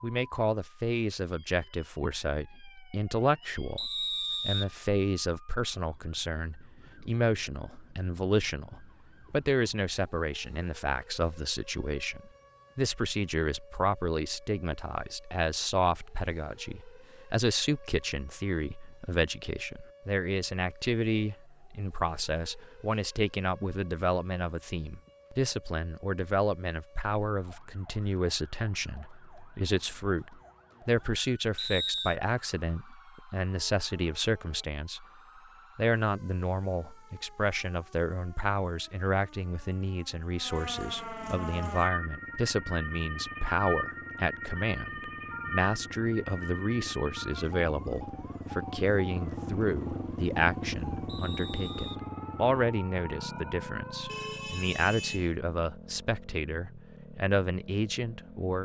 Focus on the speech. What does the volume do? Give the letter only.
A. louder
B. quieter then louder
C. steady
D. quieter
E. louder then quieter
C.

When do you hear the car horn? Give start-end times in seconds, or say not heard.
54.0-55.4.